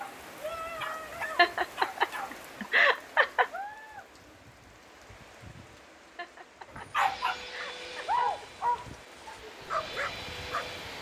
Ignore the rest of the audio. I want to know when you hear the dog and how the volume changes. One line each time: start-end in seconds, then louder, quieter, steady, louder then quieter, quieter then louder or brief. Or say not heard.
0.0-2.5 brief
6.8-10.9 louder then quieter.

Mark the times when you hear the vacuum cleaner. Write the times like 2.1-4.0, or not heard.
7.0-10.9.